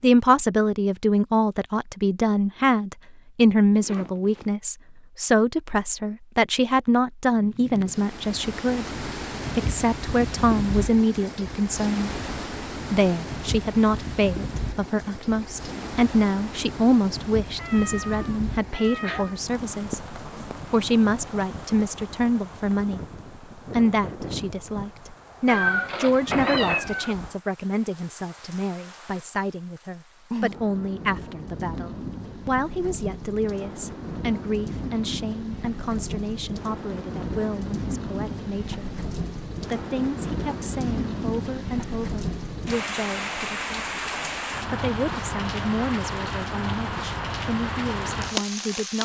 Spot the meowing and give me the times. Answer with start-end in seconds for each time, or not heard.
17.6-19.4, 25.4-27.1.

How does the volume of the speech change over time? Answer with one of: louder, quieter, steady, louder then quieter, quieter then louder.
quieter.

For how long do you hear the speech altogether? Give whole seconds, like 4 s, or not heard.
46 s.